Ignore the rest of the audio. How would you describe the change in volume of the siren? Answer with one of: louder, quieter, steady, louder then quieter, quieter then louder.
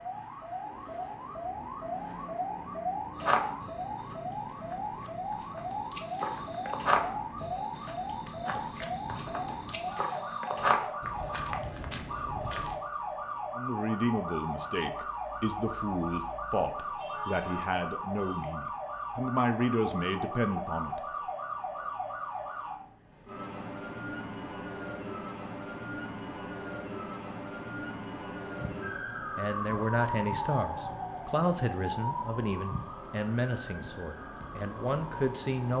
steady.